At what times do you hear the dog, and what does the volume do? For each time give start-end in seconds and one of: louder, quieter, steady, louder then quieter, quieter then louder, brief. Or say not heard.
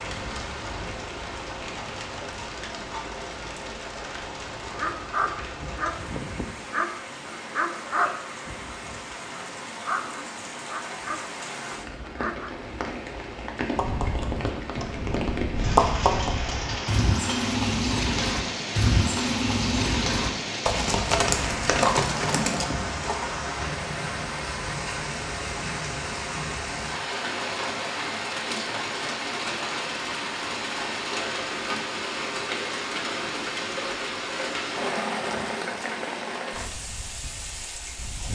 4.7-12.5 quieter.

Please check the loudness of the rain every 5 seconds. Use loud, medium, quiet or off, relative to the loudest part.
medium, medium, medium, loud, loud, loud, loud, loud.